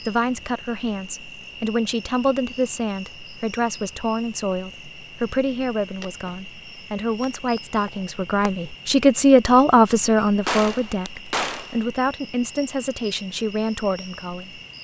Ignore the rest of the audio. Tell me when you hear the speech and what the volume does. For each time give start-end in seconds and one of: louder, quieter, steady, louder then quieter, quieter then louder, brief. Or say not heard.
0.0-14.6 louder then quieter.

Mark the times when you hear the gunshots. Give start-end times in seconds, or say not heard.
10.4-11.8.